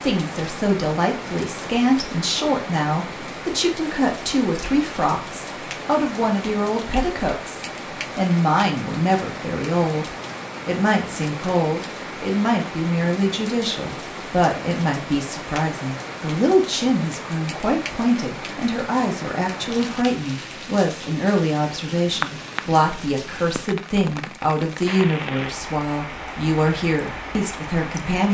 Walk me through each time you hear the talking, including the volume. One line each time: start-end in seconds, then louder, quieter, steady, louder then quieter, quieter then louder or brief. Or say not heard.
0.0-28.2 steady.